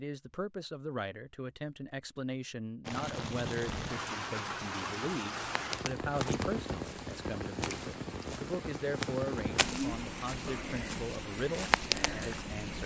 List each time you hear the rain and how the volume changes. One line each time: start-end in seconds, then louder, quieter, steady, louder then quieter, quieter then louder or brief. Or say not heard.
2.9-12.8 steady.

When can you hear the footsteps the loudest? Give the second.
12 s.